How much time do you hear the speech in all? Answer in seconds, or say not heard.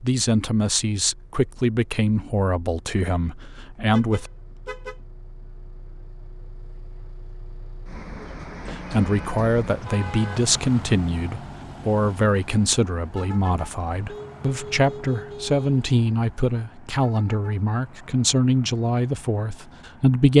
16 s.